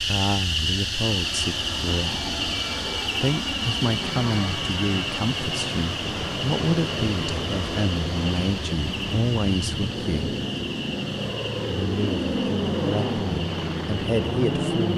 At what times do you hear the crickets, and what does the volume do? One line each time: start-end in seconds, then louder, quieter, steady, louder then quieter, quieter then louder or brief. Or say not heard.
0.0-14.9 quieter.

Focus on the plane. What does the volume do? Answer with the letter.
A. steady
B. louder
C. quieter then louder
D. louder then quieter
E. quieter
B.